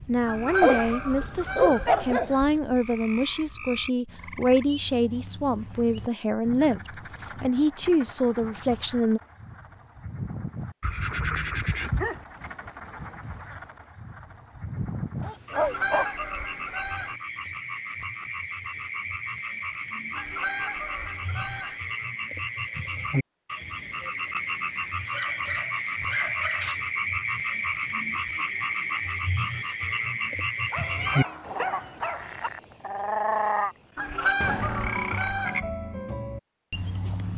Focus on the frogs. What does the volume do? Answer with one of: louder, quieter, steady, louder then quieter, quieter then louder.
louder.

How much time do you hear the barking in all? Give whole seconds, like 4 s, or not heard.
8 s.